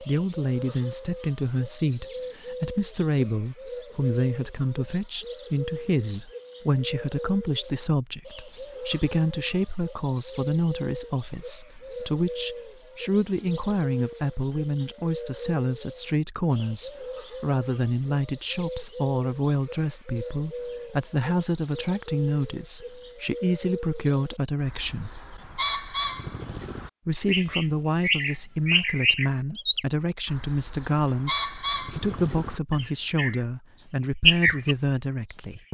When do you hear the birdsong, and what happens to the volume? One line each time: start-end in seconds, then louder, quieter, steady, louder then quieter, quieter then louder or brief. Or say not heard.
0.0-35.7 louder.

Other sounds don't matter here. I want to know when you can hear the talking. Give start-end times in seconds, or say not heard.
0.0-25.1, 27.1-35.7.